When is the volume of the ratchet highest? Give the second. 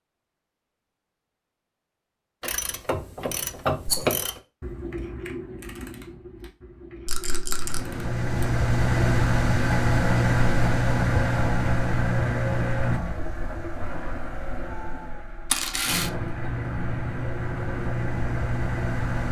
4 s.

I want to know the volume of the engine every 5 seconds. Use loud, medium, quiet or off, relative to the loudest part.
off, loud, loud, medium.